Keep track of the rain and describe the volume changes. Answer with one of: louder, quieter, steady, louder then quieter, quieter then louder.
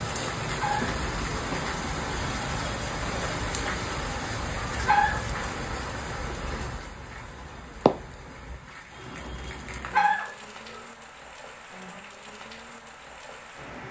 quieter.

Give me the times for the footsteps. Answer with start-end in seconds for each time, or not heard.
not heard.